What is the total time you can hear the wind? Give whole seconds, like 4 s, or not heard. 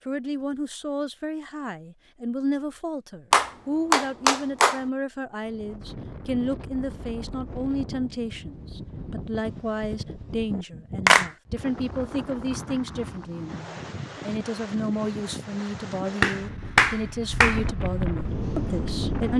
14 s.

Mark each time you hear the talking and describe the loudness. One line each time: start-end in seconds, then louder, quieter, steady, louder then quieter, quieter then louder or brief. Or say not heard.
0.1-19.3 steady.